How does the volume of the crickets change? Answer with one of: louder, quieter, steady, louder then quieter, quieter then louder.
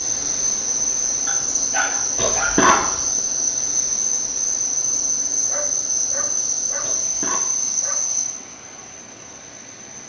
steady.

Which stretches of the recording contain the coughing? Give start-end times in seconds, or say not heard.
2.1-3.0, 6.8-7.4.